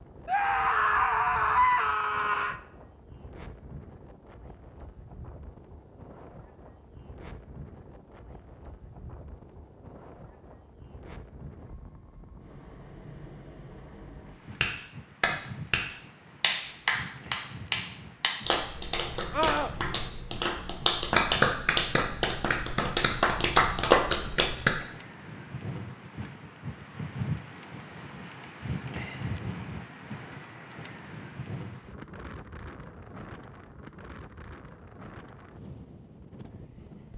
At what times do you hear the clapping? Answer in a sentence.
The clapping can be heard from 14.6 to 24.8 s.